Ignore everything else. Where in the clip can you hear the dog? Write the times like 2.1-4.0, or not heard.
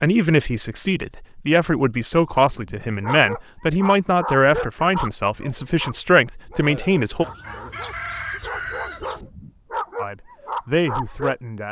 2.5-11.3.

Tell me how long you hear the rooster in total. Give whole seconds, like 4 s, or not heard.
2 s.